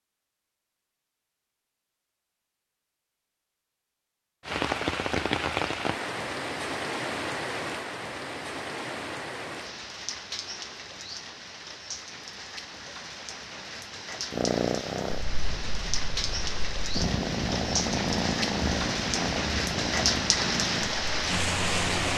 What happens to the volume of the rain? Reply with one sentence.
The volume of the rain goes down, then up.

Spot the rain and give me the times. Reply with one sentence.
You can hear the rain from 4.5 to 22.1 s.